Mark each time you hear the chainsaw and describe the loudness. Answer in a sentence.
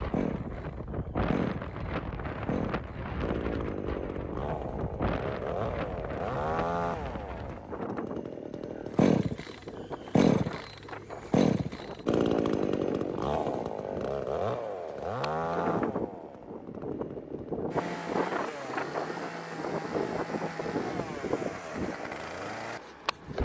The chainsaw can be heard from 0.0 to 23.4 s, getting louder then quieter.